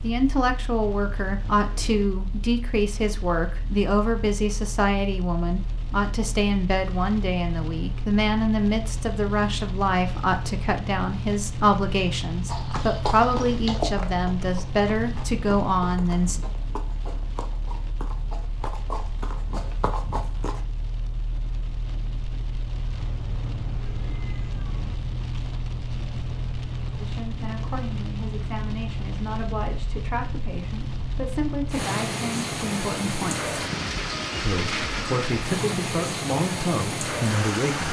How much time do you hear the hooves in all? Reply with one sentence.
You can hear the hooves for 8 seconds altogether.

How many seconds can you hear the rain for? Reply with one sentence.
The rain can be heard for 38 seconds in total.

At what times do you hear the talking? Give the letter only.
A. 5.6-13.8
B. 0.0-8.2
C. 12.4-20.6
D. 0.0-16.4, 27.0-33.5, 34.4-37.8
D.